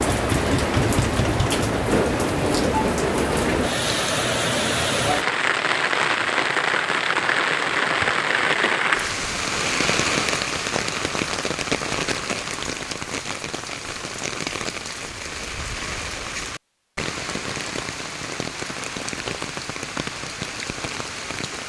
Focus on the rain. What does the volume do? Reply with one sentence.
The volume of the rain goes down.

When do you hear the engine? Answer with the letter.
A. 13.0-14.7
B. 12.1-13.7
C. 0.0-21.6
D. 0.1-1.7
D.